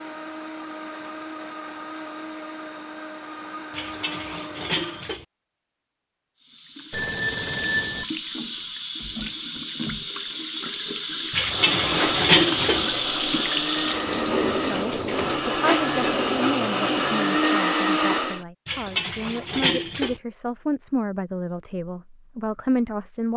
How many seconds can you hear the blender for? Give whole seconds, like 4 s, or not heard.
12 s.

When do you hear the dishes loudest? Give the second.
12 s.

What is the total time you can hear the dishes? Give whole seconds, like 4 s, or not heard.
5 s.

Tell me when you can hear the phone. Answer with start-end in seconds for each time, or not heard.
6.9-8.1.